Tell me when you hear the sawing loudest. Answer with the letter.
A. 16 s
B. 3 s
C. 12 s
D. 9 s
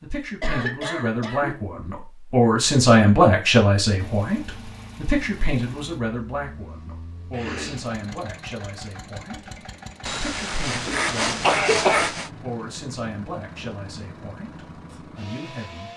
C.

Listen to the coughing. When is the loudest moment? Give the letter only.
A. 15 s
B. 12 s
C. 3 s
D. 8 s
B.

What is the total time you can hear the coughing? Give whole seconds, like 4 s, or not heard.
3 s.